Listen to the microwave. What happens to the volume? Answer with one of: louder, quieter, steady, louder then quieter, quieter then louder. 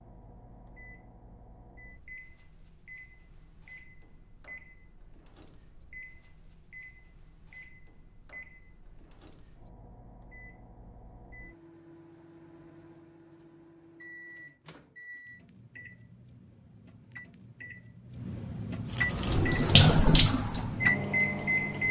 louder.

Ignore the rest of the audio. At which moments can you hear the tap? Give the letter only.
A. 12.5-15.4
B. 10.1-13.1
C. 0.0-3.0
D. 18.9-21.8
D.